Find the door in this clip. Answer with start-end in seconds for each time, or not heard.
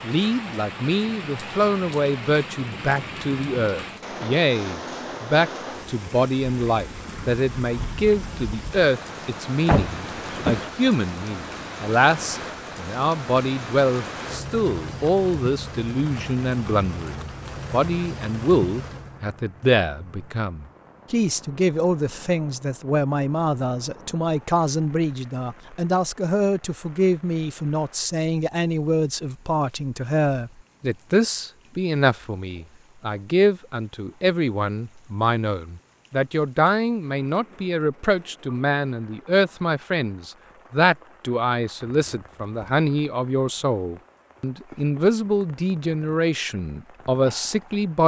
9.7-10.7.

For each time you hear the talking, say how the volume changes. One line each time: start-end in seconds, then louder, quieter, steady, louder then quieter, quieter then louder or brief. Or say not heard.
0.0-48.0 steady.